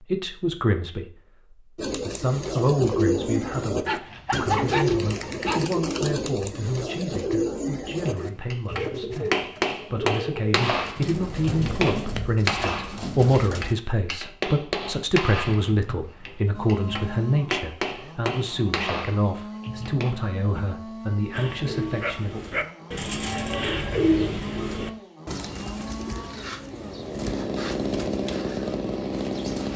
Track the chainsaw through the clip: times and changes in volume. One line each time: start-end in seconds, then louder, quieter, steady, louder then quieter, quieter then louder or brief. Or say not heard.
16.5-29.7 louder.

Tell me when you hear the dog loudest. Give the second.
5 s.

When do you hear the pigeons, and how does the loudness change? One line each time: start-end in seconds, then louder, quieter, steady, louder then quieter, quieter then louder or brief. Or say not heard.
1.8-13.8 quieter
21.3-29.7 louder then quieter.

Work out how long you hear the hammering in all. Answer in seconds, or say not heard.
12 s.